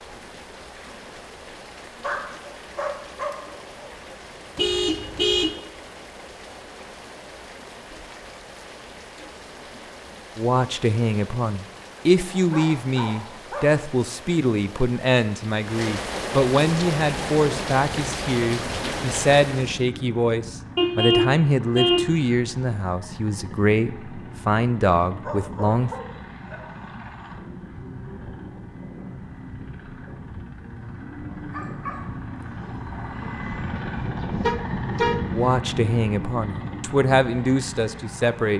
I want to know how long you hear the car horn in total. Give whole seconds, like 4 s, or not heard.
3 s.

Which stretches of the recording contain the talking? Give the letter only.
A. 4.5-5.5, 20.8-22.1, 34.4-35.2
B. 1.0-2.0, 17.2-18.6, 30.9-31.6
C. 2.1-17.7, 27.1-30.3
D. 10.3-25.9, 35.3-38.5
D.